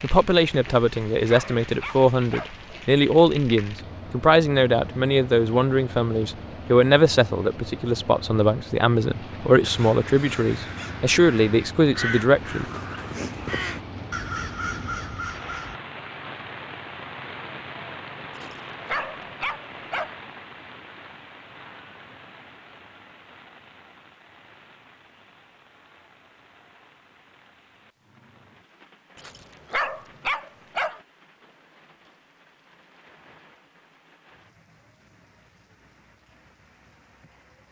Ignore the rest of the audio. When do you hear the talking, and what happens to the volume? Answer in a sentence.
The talking can be heard from 0.0 to 12.7 s, at a steady volume.